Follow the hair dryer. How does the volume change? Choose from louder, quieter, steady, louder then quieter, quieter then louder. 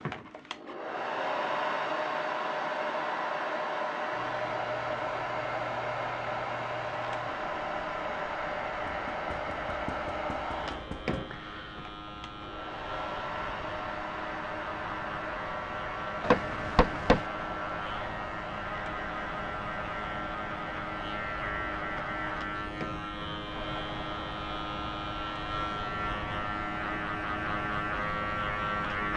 quieter.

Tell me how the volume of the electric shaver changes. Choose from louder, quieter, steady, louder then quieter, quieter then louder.
louder.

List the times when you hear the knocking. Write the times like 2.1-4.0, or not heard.
8.8-11.2, 16.2-17.2.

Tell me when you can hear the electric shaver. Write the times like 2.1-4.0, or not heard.
4.1-29.1.